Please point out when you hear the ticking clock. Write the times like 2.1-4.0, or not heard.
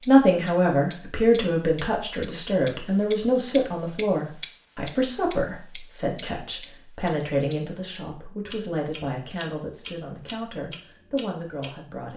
0.0-11.7.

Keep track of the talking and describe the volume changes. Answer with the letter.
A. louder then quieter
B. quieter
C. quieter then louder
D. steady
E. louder
B.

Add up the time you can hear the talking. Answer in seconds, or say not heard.
12 s.